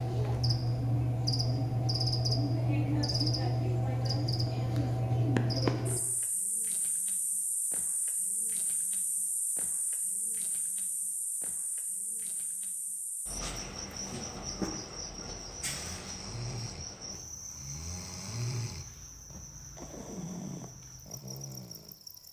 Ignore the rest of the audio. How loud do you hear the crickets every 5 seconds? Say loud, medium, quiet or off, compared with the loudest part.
loud, medium, quiet, quiet, quiet.